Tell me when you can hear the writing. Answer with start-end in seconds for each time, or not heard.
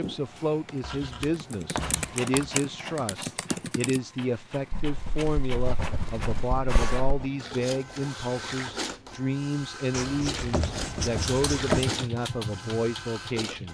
0.8-2.5, 4.7-7.3, 9.9-12.0.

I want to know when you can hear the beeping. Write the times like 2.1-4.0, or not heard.
not heard.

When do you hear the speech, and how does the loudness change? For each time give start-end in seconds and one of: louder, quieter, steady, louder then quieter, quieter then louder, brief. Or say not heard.
0.0-13.7 steady.